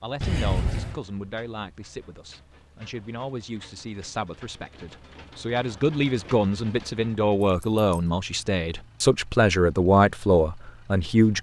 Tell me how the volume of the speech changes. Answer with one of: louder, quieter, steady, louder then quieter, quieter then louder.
louder.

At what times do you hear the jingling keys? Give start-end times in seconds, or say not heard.
0.2-1.0, 7.4-7.8.